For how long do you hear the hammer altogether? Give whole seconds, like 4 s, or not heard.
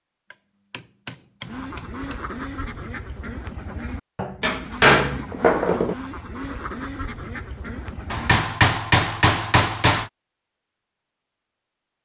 6 s.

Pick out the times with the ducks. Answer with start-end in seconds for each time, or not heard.
1.4-8.5.